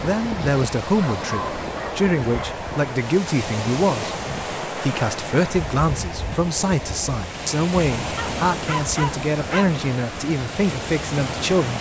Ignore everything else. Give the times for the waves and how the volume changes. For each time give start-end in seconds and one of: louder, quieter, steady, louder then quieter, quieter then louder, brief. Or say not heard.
0.0-11.7 steady.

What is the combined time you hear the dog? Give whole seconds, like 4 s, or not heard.
3 s.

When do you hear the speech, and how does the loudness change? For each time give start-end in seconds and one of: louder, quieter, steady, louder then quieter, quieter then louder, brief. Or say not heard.
0.0-11.7 steady.